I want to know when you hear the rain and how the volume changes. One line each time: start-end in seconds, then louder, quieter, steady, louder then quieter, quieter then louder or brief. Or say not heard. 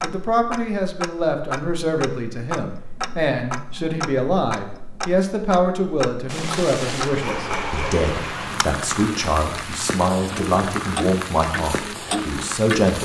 6.2-12.9 steady.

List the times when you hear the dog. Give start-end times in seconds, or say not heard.
7.2-8.1.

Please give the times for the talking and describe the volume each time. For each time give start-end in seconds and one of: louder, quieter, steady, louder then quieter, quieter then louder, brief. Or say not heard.
0.0-12.9 steady.